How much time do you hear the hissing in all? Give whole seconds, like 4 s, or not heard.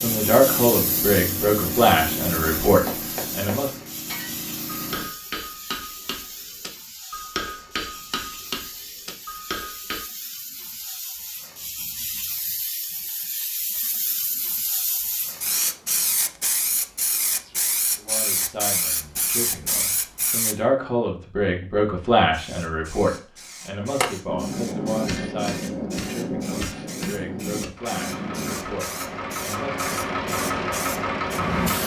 30 s.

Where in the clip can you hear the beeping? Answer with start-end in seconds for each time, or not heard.
not heard.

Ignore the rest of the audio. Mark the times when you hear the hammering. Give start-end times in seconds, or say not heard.
2.8-10.1, 23.8-28.6.